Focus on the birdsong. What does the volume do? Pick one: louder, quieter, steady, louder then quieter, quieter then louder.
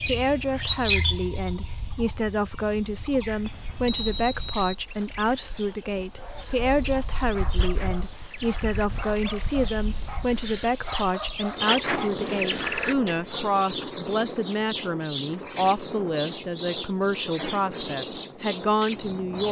quieter then louder.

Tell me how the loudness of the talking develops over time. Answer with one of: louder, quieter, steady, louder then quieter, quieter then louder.
steady.